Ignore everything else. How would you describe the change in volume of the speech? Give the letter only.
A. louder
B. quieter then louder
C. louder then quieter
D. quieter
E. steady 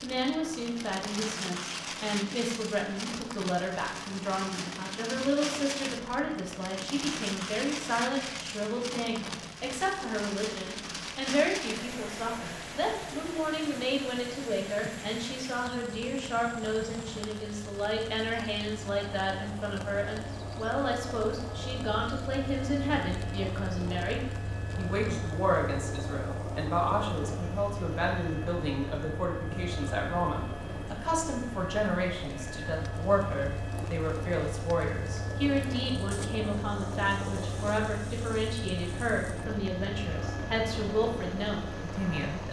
E.